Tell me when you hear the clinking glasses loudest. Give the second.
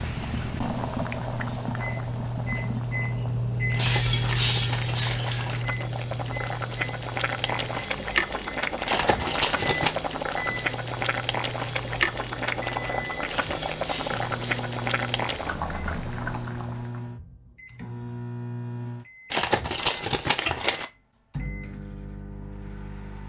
5 s.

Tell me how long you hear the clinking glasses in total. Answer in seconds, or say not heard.
3 s.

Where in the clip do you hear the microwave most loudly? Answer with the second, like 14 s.
4 s.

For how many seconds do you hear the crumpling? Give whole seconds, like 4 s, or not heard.
5 s.